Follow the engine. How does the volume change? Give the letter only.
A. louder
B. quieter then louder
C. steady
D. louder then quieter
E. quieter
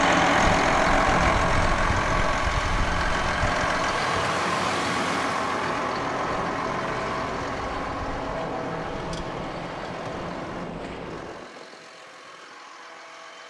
E.